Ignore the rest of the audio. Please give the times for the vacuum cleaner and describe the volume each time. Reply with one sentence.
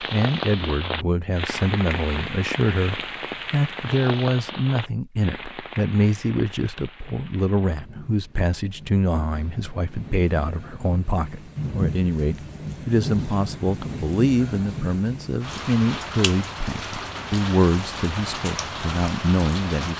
You can't hear the vacuum cleaner here.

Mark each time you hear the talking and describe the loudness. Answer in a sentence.
You can hear the talking from 0.0 to 19.9 s, at a steady volume.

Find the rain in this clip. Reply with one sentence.
The rain can be heard from 0.0 to 19.9 s.